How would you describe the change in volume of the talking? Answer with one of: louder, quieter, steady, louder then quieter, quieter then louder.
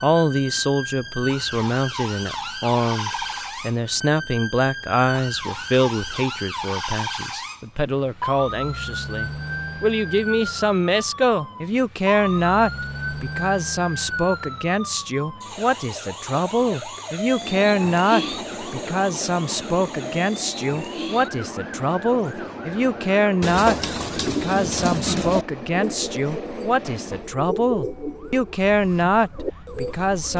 steady.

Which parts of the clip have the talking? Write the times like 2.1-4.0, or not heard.
0.0-30.3.